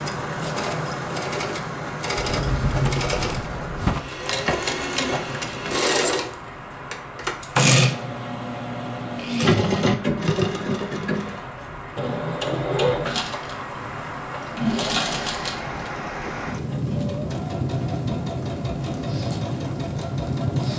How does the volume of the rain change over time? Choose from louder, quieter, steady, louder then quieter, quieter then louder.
quieter then louder.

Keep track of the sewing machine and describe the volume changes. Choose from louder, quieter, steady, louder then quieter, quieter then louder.
louder then quieter.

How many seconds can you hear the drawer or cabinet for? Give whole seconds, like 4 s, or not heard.
2 s.